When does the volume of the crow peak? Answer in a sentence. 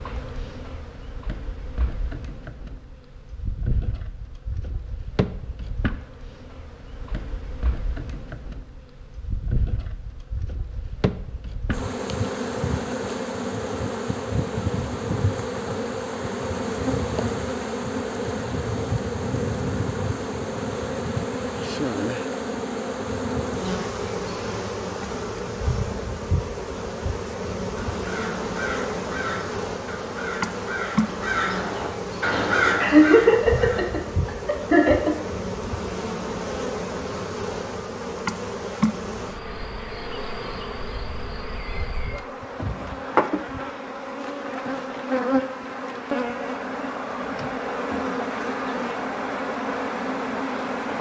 The volume of the crow peaks at 33 seconds.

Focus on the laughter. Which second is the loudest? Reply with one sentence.
The loudest moment of the laughter is at 33 seconds.